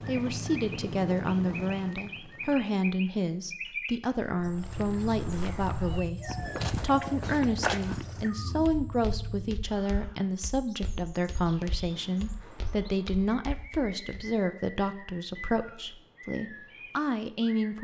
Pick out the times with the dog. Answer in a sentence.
The dog can't be heard in this clip.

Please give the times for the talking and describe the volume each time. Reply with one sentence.
The talking can be heard from 0.1 to 17.7 s, at a steady volume.